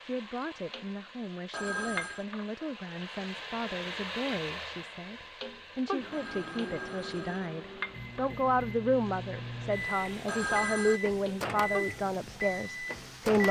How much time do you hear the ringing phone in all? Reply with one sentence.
You can hear the ringing phone for 3 seconds altogether.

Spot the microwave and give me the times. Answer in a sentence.
You can hear the microwave from 6.0 to 13.4 s.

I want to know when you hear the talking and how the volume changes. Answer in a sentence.
You can hear the talking from 0.0 to 13.4 s, getting louder.